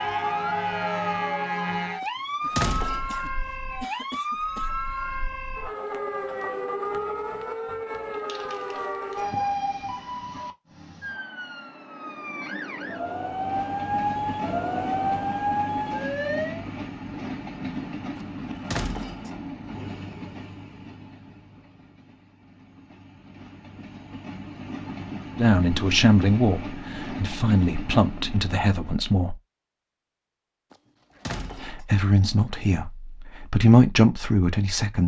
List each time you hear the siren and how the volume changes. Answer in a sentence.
The siren can be heard from 0.0 to 16.6 s, getting quieter then louder.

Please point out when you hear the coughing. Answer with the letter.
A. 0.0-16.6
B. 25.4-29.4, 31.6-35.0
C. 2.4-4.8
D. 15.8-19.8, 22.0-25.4
C.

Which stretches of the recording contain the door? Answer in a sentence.
The door can be heard from 2.0 to 3.2 s, from 18.1 to 19.4 s and from 30.7 to 31.9 s.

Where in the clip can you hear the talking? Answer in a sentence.
The talking can be heard from 25.4 to 29.4 s and from 31.6 to 35.0 s.